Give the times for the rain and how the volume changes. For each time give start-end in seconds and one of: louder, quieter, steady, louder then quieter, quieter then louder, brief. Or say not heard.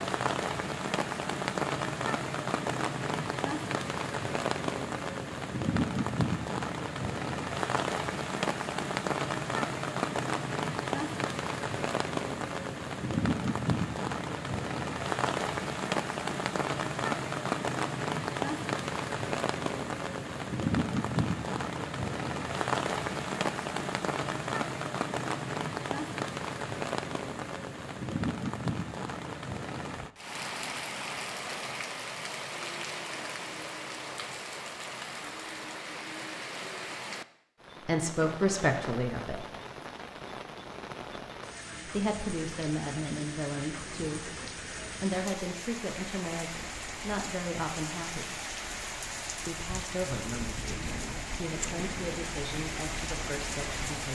0.0-54.0 quieter.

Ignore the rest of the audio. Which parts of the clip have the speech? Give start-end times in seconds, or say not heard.
37.9-39.5, 41.9-48.4, 49.5-54.0.